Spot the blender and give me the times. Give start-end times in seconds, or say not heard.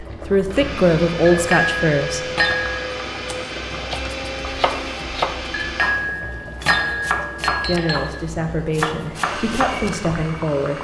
0.3-6.0, 9.1-10.7.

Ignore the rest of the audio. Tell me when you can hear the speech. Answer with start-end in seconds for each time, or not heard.
0.0-2.2, 7.7-10.7.